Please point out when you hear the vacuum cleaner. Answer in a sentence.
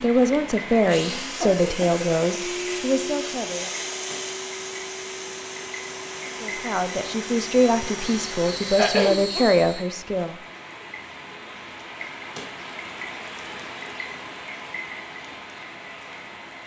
You can hear the vacuum cleaner from 0.2 to 9.8 s.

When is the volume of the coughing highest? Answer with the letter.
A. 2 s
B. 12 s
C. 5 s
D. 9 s
D.